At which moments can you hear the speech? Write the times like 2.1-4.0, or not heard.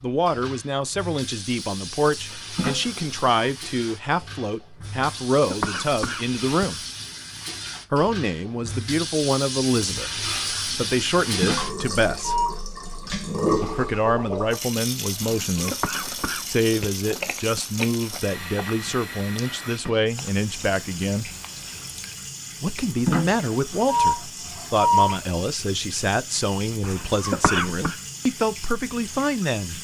0.0-6.8, 7.9-12.3, 13.6-15.8, 16.4-21.3, 22.6-29.7.